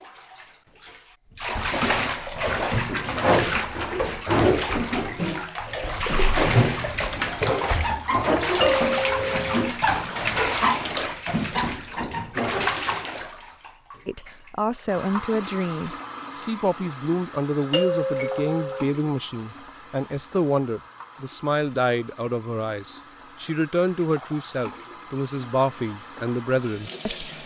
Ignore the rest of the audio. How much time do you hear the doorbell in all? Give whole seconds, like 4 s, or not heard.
2 s.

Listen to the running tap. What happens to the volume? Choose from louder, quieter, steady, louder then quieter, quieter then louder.
quieter.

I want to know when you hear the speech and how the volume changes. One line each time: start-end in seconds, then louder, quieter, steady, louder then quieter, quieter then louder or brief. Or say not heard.
14.1-27.3 steady.